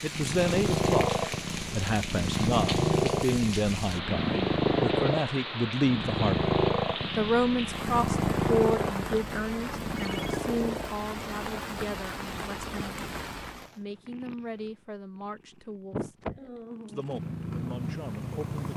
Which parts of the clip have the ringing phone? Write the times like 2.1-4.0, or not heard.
9.9-10.3.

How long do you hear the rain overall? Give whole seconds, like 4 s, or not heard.
14 s.